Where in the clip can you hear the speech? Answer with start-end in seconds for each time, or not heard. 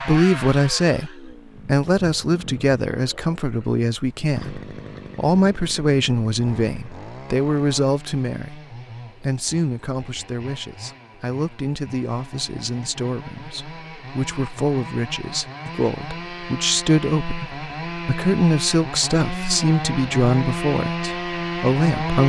0.0-22.2.